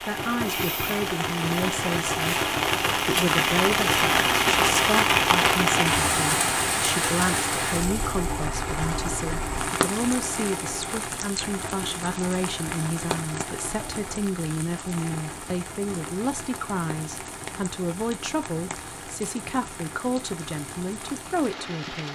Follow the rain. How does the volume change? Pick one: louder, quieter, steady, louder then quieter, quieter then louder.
quieter.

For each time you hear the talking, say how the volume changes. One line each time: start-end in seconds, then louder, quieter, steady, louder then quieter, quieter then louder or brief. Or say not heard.
0.0-22.1 steady.